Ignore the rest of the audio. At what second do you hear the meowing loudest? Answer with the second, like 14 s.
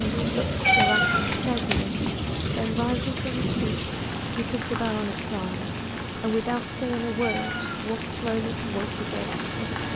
1 s.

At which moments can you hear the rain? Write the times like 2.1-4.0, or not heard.
0.0-9.9.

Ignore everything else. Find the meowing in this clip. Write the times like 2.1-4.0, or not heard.
0.6-1.9, 7.2-8.4.